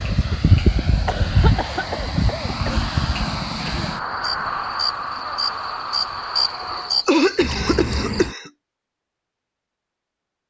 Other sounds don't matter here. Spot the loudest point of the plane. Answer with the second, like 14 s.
1 s.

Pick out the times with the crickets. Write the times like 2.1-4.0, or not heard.
0.0-8.3.